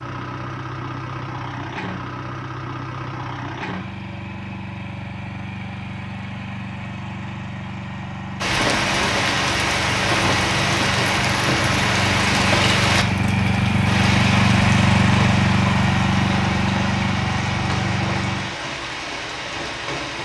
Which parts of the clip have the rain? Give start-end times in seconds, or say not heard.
8.4-20.2.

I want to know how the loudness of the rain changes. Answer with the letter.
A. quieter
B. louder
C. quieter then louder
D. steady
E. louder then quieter
A.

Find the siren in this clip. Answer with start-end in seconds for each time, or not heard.
not heard.